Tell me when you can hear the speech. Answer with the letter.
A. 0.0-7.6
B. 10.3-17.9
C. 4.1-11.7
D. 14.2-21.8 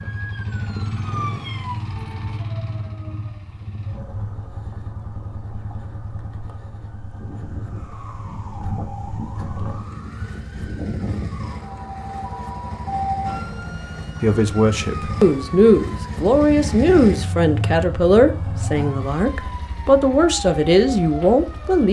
D.